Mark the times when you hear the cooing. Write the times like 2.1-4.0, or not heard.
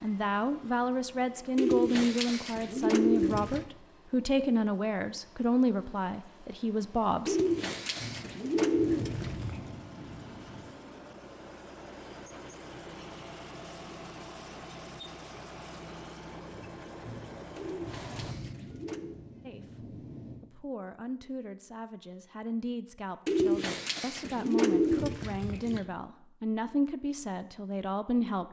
1.6-3.6, 7.2-9.7, 17.6-19.2, 23.2-25.9.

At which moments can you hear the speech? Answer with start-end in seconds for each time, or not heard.
0.0-7.3, 19.4-28.4.